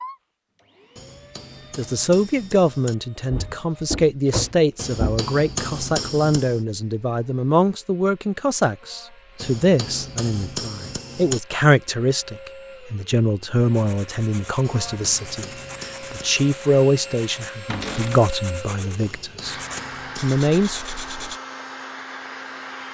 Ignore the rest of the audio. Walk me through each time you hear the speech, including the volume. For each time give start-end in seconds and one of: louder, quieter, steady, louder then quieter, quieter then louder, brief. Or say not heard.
1.8-19.6 steady
20.2-20.8 brief.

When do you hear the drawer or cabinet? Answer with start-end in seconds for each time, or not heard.
3.3-5.3, 17.7-18.2.